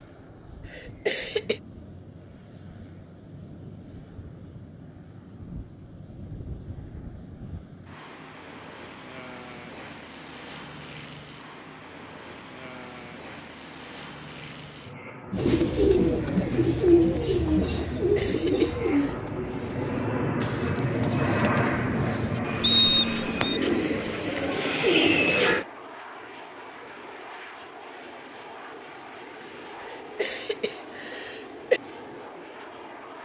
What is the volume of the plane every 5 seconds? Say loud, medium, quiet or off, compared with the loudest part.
quiet, quiet, quiet, medium, loud, quiet, quiet.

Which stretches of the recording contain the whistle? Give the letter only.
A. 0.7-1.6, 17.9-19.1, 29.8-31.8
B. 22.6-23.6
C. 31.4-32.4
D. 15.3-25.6
B.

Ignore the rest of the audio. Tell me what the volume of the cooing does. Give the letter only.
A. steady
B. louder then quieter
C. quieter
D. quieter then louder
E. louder
D.